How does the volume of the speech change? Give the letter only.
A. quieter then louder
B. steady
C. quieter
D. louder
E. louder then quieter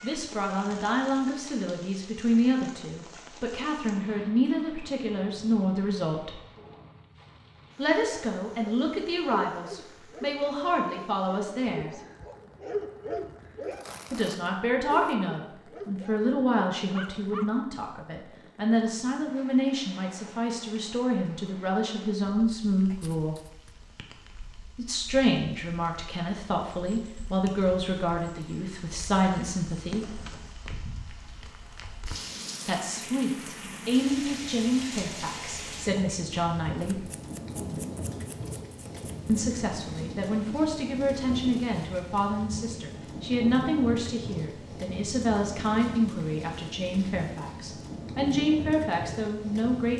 B.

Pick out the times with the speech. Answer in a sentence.
The speech can be heard from 0.0 to 6.4 s, from 7.8 to 11.9 s, from 14.1 to 23.4 s, from 24.8 to 30.2 s, from 32.6 to 37.0 s and from 39.2 to 49.9 s.